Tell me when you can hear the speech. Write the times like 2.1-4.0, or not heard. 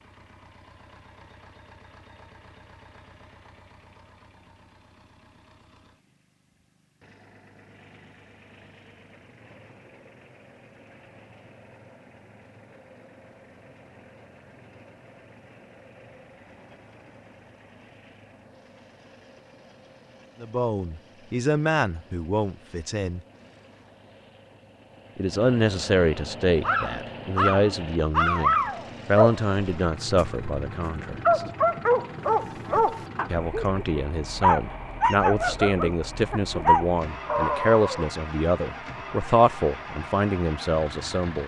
20.4-23.2, 25.1-31.4, 33.3-41.4.